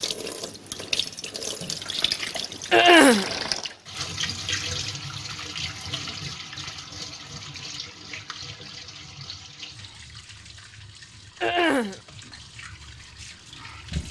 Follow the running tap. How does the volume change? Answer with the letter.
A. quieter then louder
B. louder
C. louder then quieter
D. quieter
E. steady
D.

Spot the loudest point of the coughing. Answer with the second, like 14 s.
3 s.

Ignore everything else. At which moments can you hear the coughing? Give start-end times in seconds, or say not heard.
2.7-3.3, 11.4-12.0.